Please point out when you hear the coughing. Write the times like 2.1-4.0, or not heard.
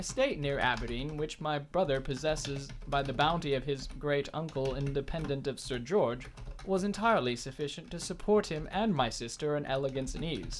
not heard.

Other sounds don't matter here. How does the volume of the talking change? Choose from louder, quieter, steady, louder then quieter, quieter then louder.
steady.